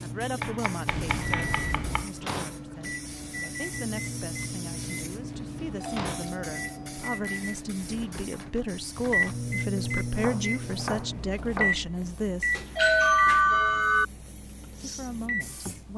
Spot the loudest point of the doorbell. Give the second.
13 s.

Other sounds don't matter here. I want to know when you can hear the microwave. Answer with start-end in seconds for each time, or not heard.
0.0-15.9.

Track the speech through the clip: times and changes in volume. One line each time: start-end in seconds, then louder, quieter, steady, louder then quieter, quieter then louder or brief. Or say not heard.
0.0-12.6 louder
14.8-15.9 brief.